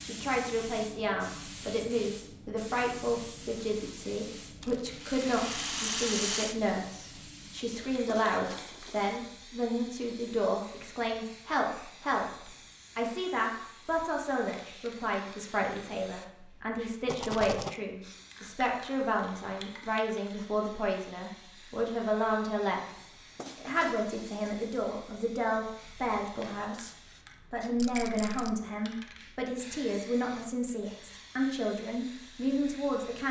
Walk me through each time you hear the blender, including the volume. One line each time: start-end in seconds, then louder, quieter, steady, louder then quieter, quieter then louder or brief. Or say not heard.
not heard.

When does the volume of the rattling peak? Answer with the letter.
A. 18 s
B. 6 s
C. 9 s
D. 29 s
B.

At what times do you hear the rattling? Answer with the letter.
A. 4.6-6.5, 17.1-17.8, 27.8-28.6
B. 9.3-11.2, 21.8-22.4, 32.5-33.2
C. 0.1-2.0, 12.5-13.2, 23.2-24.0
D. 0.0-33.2
A.